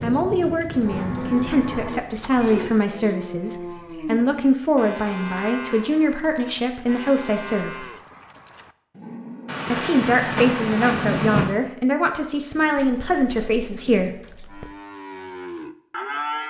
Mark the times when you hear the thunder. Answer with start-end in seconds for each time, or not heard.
9.4-11.4.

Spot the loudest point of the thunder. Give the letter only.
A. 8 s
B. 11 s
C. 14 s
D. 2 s
B.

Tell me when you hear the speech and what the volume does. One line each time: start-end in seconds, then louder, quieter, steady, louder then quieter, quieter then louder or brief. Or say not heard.
0.0-7.8 steady
9.7-14.1 steady.